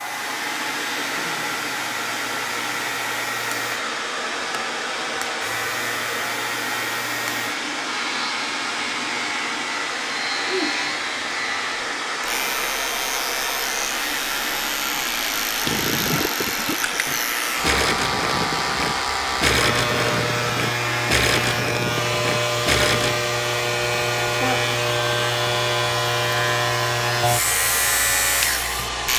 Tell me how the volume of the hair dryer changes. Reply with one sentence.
The volume of the hair dryer stays about the same.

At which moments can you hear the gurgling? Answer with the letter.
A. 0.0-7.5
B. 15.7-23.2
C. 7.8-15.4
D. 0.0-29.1
B.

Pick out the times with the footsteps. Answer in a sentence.
The footsteps can't be heard in this clip.